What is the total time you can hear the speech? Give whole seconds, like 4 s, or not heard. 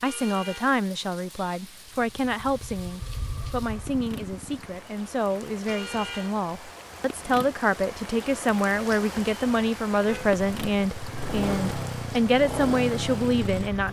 14 s.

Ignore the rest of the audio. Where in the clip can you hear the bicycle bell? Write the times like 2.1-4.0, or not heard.
not heard.